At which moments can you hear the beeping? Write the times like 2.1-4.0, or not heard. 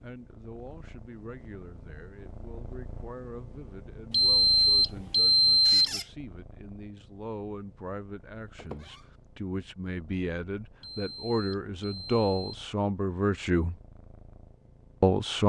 4.1-5.9, 10.8-12.6.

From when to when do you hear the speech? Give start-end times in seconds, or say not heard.
0.0-13.8, 15.0-15.4.